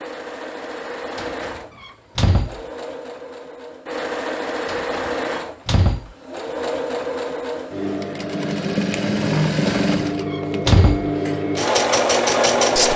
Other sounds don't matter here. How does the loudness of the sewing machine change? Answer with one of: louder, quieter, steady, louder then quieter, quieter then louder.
louder.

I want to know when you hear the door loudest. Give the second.
11 s.